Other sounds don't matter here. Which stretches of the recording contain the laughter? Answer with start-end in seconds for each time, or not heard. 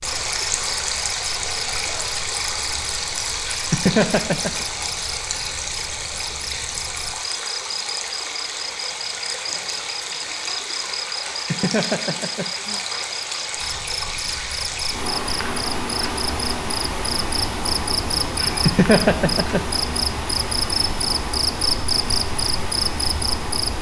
3.5-4.7, 11.3-12.8, 18.4-19.6.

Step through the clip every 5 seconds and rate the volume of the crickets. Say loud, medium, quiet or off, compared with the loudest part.
medium, medium, medium, loud, loud.